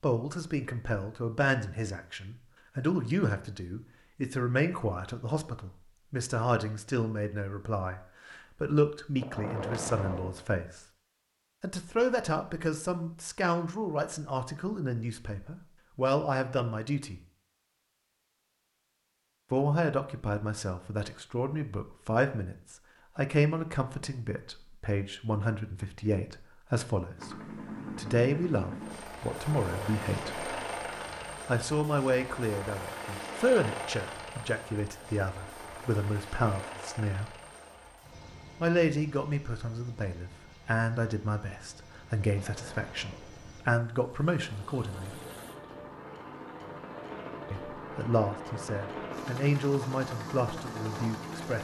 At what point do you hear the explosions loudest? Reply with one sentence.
The volume of the explosions peaks at 10 seconds.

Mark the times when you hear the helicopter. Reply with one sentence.
The helicopter can be heard from 27.1 to 51.5 s.